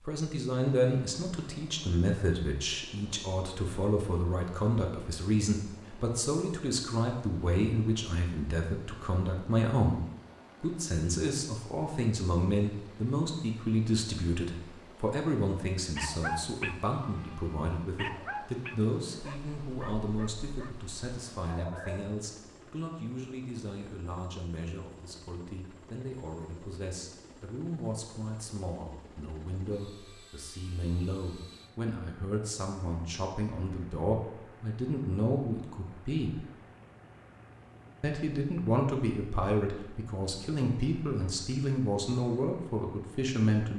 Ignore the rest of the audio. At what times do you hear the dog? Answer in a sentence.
You can hear the dog from 15.9 to 22.2 s.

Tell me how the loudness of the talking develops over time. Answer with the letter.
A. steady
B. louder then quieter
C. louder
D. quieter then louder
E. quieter
D.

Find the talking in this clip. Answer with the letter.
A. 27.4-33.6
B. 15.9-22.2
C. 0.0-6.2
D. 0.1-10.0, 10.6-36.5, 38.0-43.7
D.